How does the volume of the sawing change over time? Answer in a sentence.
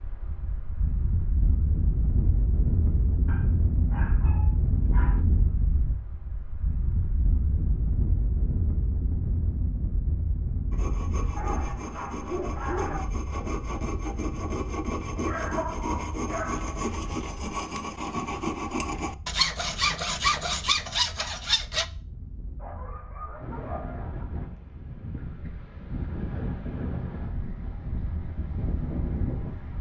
The loudness of the sawing goes up.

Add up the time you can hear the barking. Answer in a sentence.
You can hear the barking for 7 seconds altogether.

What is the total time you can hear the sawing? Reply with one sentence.
The sawing can be heard for 11 seconds in total.